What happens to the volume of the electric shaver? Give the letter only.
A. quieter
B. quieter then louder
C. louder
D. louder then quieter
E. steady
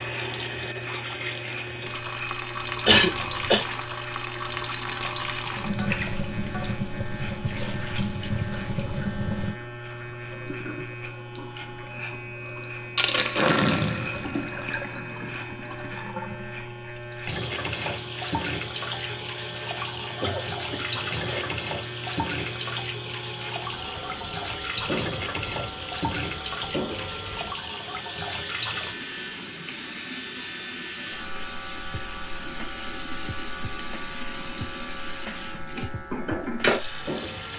E.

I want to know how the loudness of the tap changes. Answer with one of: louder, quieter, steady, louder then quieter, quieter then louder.
steady.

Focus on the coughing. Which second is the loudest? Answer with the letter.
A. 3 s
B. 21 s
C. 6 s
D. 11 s
A.